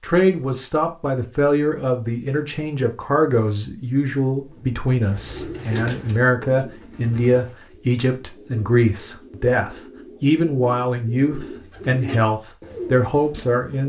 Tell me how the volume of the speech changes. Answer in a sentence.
The volume of the speech stays about the same.